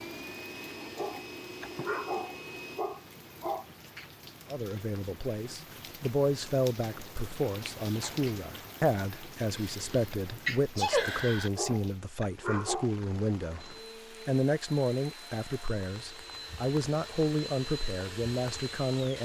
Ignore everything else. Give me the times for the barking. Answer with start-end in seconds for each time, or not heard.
0.8-3.6, 11.4-12.9.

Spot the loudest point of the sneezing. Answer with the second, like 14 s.
11 s.